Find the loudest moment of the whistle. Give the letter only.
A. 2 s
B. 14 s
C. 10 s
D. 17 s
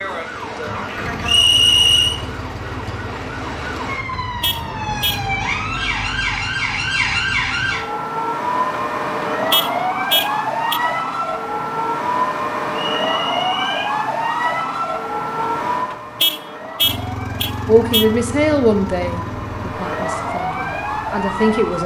A.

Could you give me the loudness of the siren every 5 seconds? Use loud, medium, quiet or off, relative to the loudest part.
medium, loud, loud, medium, loud.